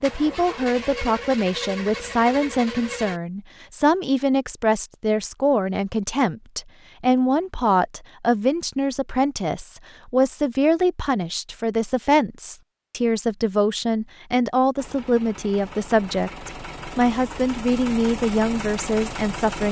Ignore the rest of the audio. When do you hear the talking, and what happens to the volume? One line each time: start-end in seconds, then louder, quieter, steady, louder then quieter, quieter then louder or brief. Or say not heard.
0.0-19.6 steady.